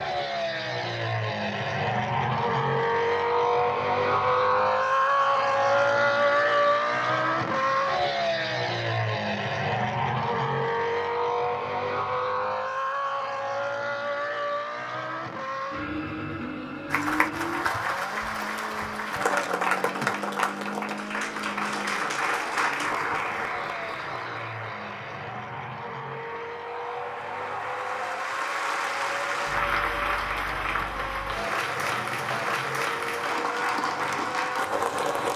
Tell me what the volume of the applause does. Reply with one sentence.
The loudness of the applause goes down, then up.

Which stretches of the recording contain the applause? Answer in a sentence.
The applause can be heard from 16.9 to 35.3 s.